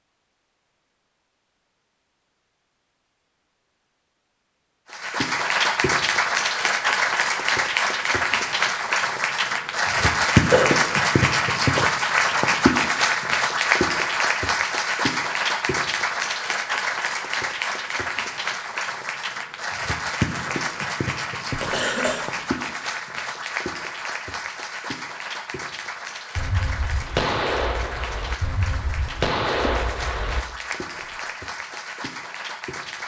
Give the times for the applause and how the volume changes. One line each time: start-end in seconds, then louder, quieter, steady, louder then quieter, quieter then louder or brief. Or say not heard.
4.9-33.0 quieter.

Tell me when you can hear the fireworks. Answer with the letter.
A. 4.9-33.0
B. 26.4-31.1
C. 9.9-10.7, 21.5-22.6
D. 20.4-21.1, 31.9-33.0
B.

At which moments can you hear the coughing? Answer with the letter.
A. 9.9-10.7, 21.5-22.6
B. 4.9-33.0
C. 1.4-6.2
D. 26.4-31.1
A.